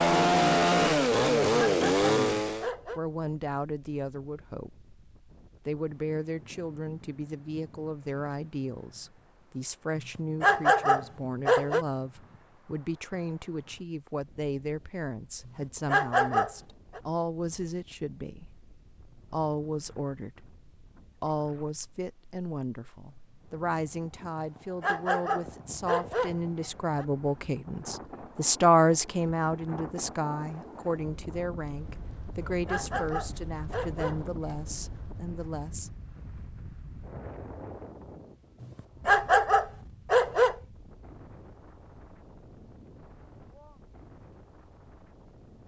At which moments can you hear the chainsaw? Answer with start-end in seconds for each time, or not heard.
0.0-2.7.